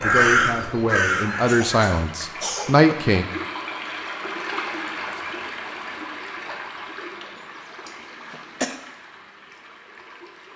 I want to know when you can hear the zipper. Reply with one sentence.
The zipper can't be heard in this clip.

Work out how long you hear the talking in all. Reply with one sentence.
The talking can be heard for 3 seconds in total.